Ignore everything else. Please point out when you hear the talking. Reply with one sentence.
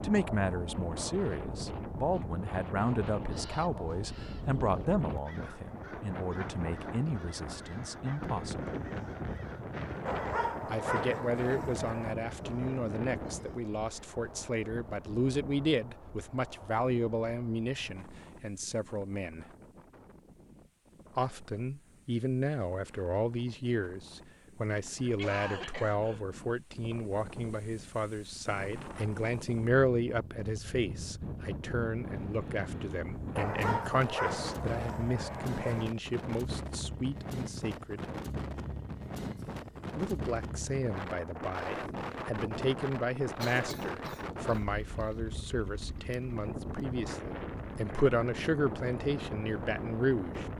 The talking can be heard from 0.0 to 8.8 s, from 10.7 to 19.4 s, from 21.1 to 38.0 s and from 40.0 to 50.5 s.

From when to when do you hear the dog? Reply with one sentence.
You can hear the dog from 10.1 to 12.2 s and from 33.4 to 35.9 s.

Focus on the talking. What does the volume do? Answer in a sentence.
The loudness of the talking stays about the same.